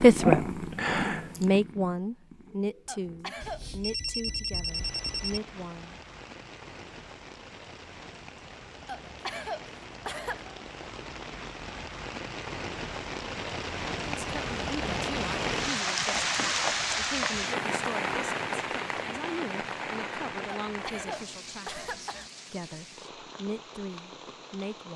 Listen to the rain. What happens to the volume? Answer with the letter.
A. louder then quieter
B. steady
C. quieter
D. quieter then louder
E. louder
A.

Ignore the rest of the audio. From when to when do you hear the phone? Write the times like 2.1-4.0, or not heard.
3.4-5.4.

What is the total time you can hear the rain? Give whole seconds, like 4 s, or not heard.
20 s.